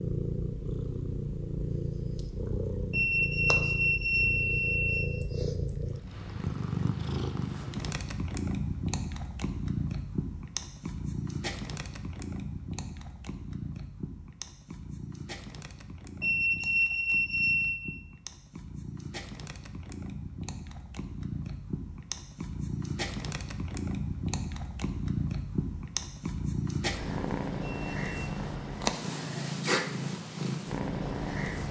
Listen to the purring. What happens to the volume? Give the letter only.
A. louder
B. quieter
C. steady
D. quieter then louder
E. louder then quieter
D.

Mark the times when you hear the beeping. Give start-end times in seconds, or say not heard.
2.9-5.1, 16.2-17.9, 27.6-28.3.